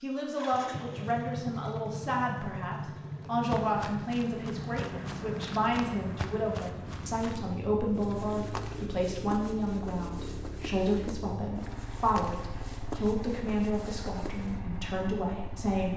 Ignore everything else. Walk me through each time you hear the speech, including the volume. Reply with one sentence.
You can hear the speech from 0.0 to 15.9 s, at a steady volume.